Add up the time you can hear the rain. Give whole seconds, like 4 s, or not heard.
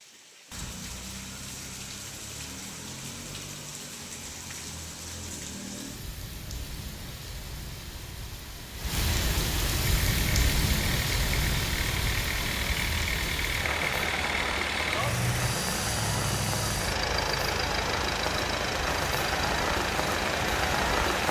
21 s.